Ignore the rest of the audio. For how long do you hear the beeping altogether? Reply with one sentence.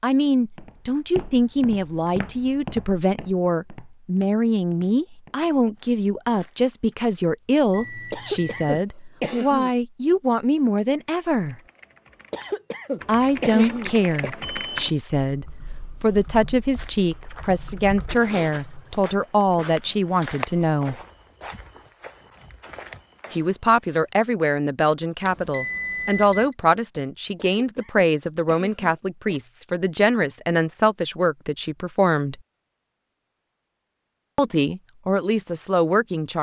The beeping can be heard for 3 seconds in total.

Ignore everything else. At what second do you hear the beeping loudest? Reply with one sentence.
The loudest moment of the beeping is at 26 seconds.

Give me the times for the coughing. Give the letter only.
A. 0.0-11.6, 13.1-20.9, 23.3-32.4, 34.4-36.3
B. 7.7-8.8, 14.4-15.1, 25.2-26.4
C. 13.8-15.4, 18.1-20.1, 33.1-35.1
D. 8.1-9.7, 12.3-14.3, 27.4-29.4
D.